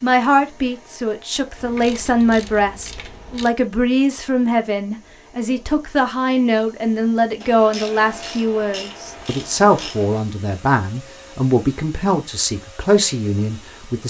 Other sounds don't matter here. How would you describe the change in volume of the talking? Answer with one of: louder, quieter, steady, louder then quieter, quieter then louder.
steady.